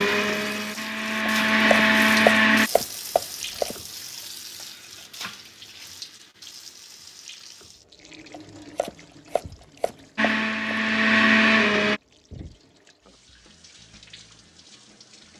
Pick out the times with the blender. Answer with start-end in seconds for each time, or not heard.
0.0-2.7, 10.2-12.0.